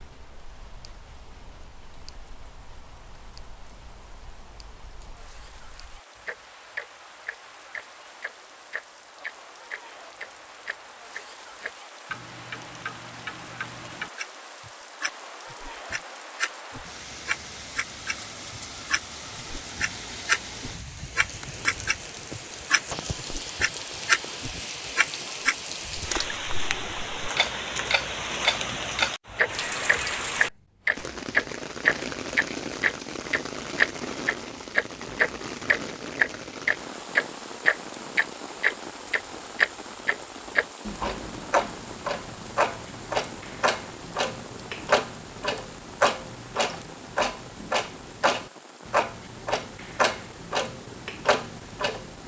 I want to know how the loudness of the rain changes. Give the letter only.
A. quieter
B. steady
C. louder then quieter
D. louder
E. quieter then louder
C.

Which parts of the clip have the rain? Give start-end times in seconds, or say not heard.
0.0-52.2.